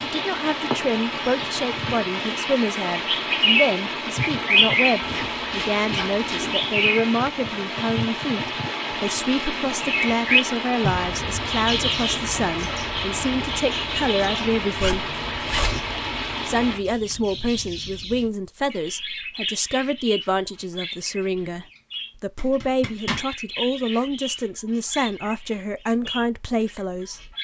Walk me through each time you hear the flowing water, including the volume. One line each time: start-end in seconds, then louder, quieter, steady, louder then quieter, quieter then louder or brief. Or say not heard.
0.0-16.8 steady.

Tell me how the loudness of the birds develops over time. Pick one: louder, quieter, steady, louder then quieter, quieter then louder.
quieter.